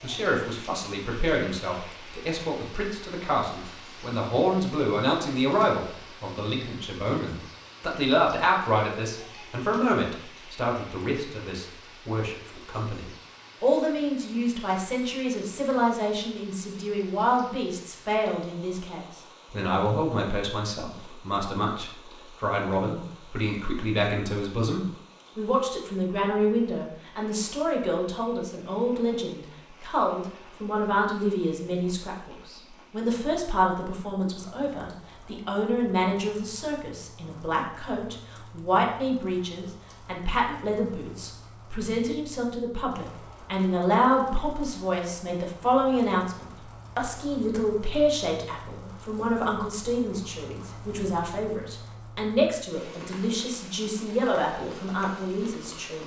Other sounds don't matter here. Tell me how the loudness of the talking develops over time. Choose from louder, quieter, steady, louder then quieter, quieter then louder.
steady.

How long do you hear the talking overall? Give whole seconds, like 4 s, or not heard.
56 s.